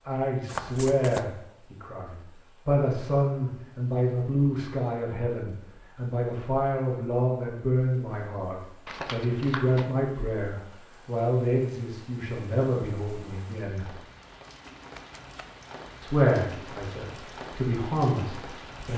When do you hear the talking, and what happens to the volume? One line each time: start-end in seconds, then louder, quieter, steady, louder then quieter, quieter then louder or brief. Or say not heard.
0.1-13.9 steady
16.0-18.9 brief.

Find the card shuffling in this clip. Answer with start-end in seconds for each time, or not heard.
0.5-1.3, 8.8-9.9, 14.4-15.6.